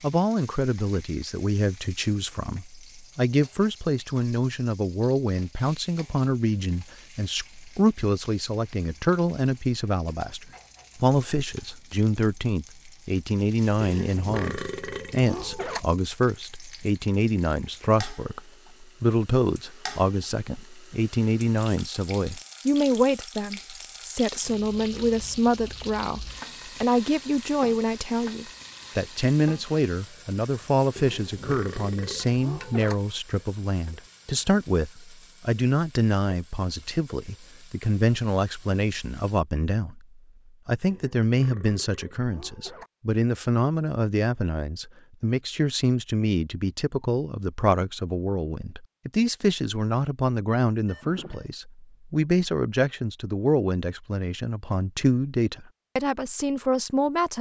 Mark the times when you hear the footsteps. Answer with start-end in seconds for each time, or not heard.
not heard.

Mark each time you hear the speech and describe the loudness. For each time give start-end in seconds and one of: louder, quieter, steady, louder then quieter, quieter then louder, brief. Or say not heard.
0.0-57.3 steady.